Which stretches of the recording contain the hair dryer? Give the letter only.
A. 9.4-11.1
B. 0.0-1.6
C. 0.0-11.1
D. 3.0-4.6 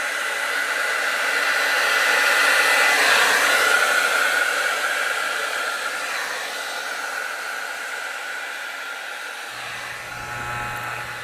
C.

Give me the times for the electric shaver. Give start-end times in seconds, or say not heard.
9.4-11.1.